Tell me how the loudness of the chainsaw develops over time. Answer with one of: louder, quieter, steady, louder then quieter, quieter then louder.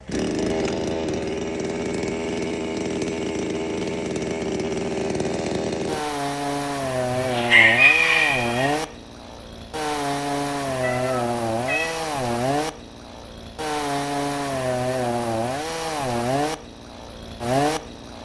steady.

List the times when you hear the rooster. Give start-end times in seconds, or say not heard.
7.1-8.8.